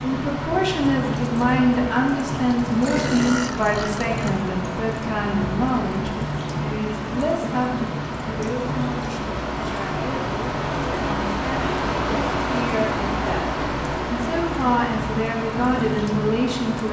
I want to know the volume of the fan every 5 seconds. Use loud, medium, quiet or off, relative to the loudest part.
medium, medium, loud, medium.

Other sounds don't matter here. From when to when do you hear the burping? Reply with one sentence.
The burping can be heard from 2.8 to 4.3 s.